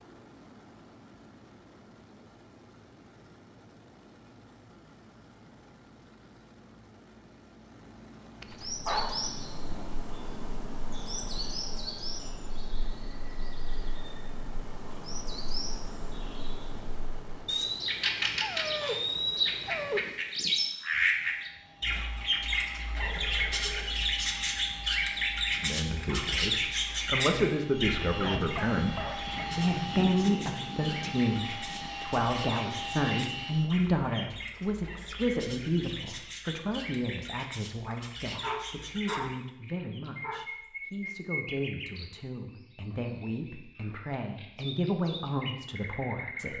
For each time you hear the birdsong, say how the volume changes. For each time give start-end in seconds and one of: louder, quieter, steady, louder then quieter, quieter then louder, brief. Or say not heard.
8.5-46.5 louder then quieter.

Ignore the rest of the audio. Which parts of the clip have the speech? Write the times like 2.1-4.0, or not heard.
25.6-46.5.